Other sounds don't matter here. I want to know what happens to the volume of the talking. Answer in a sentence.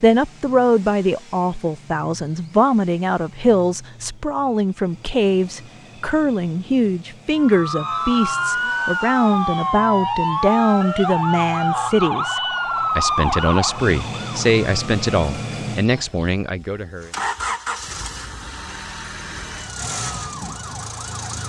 The volume of the talking stays about the same.